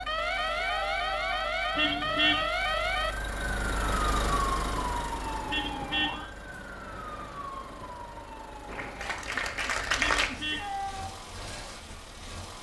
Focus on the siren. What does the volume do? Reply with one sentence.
The volume of the siren goes down.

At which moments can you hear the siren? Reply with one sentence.
The siren can be heard from 0.0 to 10.5 s.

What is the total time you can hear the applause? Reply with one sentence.
You can hear the applause for 2 seconds altogether.